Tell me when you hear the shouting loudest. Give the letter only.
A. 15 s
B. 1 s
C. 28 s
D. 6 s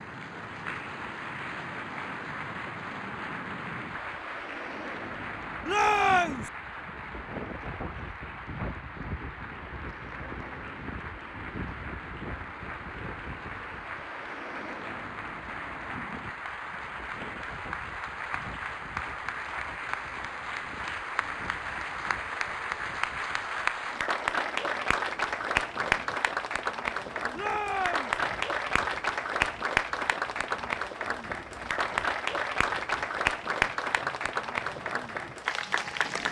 D.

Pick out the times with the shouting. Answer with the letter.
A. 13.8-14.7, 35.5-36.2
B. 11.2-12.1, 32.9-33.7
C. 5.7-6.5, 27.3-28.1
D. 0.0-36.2
C.